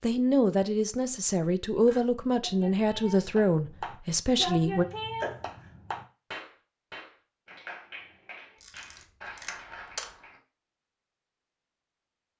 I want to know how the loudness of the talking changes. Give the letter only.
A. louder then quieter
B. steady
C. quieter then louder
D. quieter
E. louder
B.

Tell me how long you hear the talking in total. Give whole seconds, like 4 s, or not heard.
5 s.